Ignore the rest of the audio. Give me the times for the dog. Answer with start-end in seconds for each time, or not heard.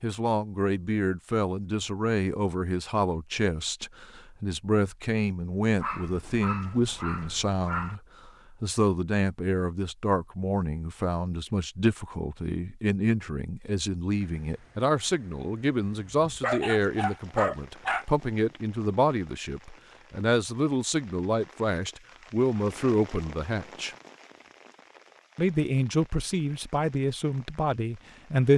5.8-8.0, 16.4-18.1.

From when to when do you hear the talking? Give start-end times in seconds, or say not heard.
0.0-23.9, 25.4-28.5.